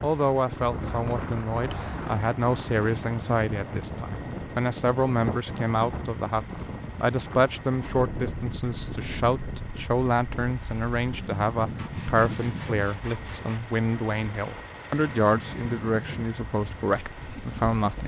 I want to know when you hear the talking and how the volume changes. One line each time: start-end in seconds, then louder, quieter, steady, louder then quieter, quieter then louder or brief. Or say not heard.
0.0-18.0 steady.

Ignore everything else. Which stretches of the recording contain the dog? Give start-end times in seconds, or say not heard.
not heard.